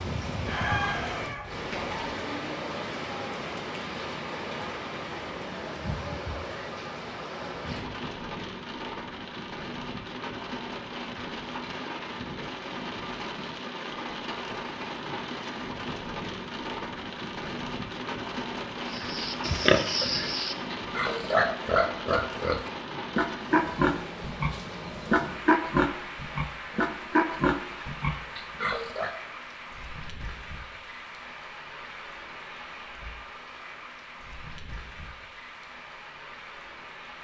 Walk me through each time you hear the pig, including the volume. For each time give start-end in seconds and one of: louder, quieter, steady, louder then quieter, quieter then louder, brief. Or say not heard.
18.9-29.1 steady.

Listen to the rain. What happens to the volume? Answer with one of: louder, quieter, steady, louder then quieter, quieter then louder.
quieter.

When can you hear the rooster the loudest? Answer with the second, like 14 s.
1 s.